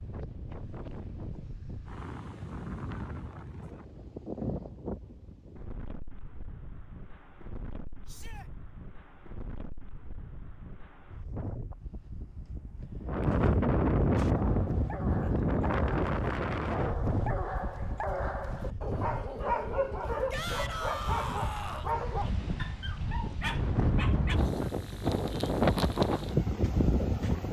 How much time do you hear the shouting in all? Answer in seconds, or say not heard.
2 s.